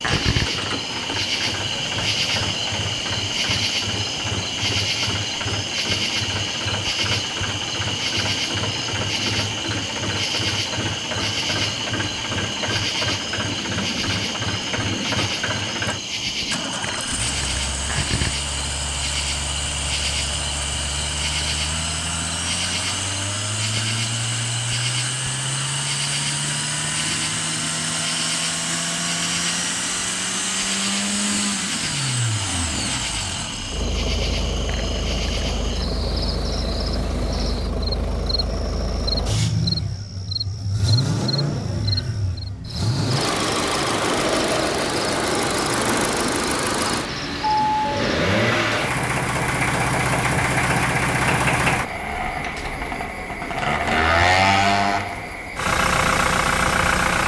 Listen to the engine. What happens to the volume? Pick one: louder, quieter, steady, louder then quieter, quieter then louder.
louder.